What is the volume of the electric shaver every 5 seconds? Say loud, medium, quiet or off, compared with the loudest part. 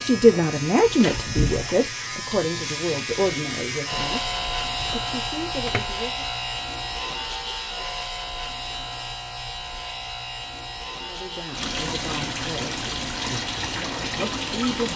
loud, loud, medium.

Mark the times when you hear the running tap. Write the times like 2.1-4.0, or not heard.
0.0-5.9, 11.5-14.9.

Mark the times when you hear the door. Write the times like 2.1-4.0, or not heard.
0.9-1.8.